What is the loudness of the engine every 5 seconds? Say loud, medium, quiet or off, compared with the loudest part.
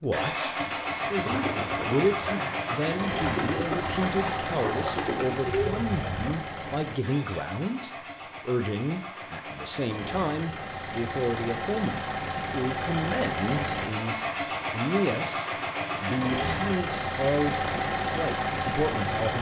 loud, medium, loud, loud.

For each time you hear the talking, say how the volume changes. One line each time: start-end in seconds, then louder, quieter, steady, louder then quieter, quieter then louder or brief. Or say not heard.
0.0-19.3 steady.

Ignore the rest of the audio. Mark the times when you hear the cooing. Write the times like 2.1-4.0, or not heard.
1.1-6.3.